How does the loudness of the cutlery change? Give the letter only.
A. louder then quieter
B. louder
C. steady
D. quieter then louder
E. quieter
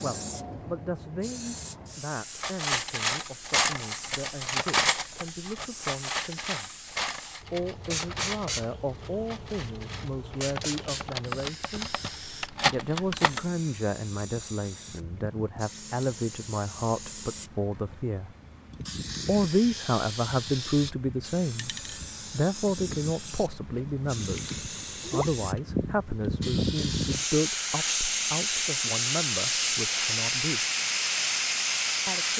D.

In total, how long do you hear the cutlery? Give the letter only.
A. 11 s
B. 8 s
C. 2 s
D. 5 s
A.